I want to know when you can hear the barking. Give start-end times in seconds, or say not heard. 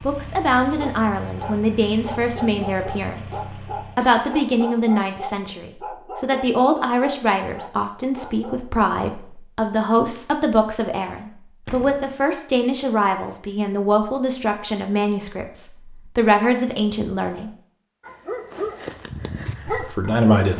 0.8-8.7, 18.0-20.5.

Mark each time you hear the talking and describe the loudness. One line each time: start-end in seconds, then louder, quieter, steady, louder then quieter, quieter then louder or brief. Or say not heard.
0.0-17.5 steady
19.7-20.5 brief.